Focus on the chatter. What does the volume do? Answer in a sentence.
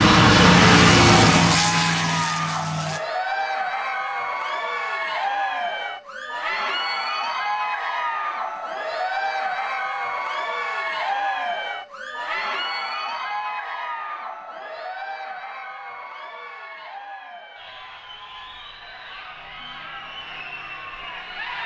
The volume of the chatter goes down.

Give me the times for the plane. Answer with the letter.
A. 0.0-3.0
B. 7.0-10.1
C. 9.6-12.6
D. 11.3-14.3
A.